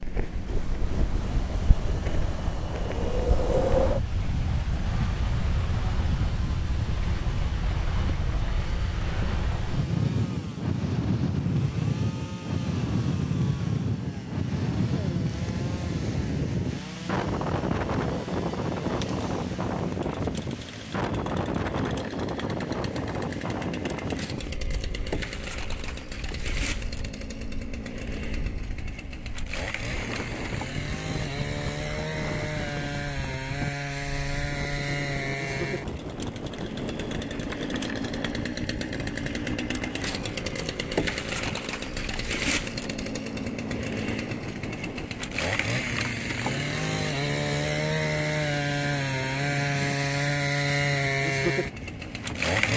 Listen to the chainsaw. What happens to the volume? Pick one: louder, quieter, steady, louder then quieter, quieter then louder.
louder.